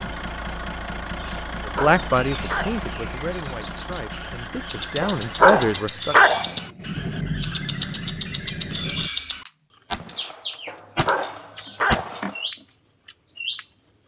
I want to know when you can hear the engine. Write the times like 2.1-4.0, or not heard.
0.0-9.1.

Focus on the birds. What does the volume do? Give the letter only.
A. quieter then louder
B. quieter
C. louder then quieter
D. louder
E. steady
D.